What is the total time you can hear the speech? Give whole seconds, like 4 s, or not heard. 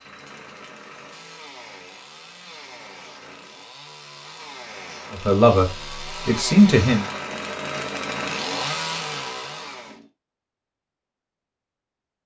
2 s.